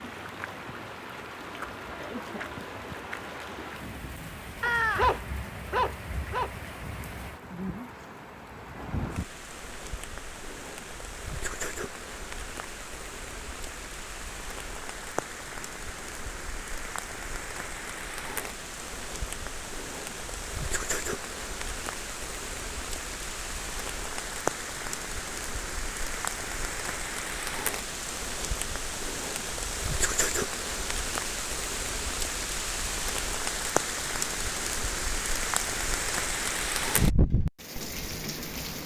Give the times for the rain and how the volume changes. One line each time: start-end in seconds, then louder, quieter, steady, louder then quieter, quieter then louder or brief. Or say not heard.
0.0-38.8 louder.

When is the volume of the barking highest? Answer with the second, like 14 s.
5 s.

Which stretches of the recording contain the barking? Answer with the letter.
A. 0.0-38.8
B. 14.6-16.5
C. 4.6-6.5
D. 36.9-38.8
C.